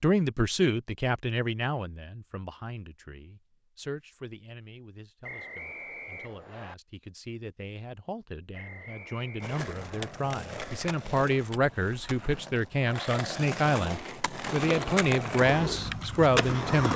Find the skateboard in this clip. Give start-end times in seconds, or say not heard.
9.4-16.9.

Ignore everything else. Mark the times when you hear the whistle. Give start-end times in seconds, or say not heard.
5.2-6.8, 8.5-10.1.